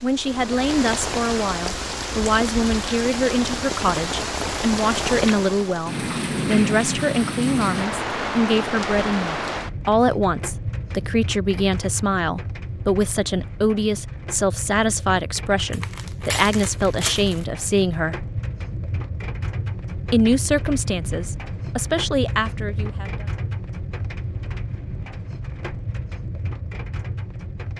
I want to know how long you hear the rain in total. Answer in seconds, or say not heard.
28 s.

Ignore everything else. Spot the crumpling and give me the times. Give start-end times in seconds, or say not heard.
15.7-17.4.